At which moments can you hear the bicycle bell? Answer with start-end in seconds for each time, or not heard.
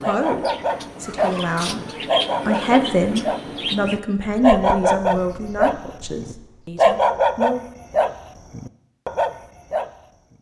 not heard.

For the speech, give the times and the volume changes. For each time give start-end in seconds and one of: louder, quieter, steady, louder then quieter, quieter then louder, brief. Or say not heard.
0.0-7.6 louder then quieter.